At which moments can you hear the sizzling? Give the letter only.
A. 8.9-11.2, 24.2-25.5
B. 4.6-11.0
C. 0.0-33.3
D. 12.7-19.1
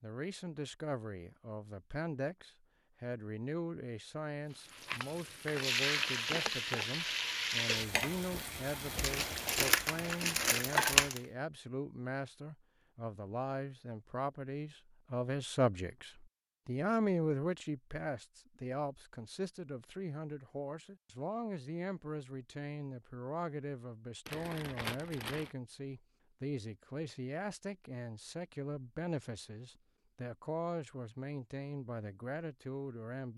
B.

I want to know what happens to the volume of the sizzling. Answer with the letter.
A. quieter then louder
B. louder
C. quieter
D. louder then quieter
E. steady
C.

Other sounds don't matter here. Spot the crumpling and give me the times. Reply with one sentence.
You can hear the crumpling from 8.9 to 11.2 s and from 24.2 to 25.5 s.